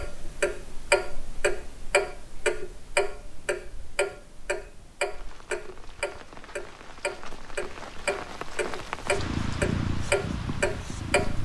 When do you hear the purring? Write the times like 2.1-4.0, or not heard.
9.0-11.4.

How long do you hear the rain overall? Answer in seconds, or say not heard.
6 s.